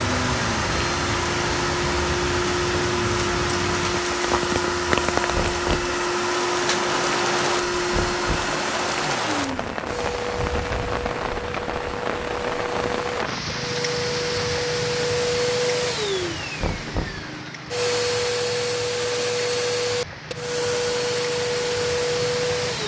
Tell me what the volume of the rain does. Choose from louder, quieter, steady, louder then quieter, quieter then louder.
quieter.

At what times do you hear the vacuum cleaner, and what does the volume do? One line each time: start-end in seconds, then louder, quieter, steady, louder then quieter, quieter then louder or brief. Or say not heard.
0.0-22.8 quieter then louder.